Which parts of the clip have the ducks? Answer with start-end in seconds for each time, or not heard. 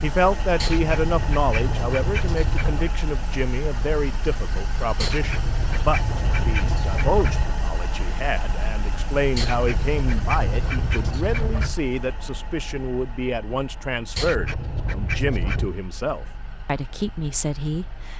0.6-3.0, 5.0-7.5, 9.3-11.8, 14.2-15.7.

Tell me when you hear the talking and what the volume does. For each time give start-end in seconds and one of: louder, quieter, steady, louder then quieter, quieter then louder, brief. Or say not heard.
0.0-18.1 steady.